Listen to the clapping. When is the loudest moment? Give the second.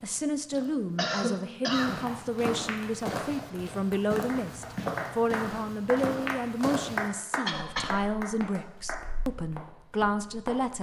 7 s.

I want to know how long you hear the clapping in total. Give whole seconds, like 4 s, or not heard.
7 s.